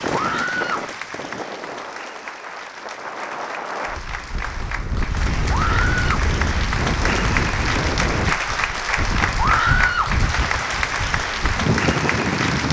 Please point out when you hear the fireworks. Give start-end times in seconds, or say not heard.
not heard.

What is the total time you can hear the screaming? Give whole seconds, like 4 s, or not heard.
2 s.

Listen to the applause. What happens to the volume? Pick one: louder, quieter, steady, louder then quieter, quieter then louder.
louder.